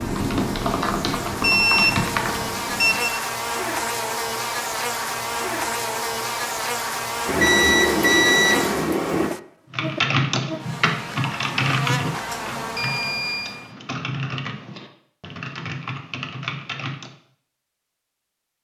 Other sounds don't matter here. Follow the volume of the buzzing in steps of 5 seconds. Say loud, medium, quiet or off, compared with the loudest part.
loud, loud, medium, off.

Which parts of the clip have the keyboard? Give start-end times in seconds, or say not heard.
0.0-3.1, 9.7-17.1.